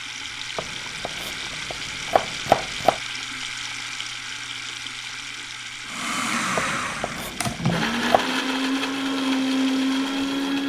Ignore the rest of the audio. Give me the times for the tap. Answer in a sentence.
The tap can be heard from 0.0 to 10.3 s.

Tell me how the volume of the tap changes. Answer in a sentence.
The volume of the tap goes down.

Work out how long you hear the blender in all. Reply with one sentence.
You can hear the blender for 5 seconds altogether.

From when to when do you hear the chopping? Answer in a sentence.
The chopping can be heard from 0.6 to 3.0 s and from 6.5 to 8.2 s.